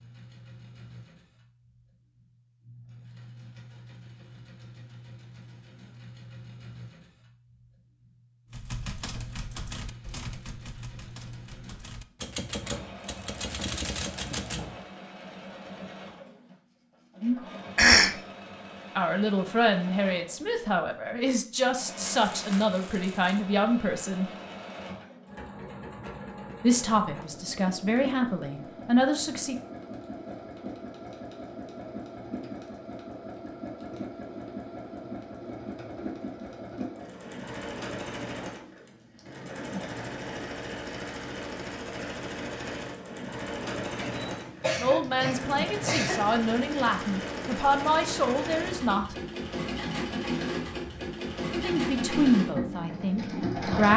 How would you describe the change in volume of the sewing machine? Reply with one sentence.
The loudness of the sewing machine goes up.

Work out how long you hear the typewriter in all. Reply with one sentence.
You can hear the typewriter for 6 seconds altogether.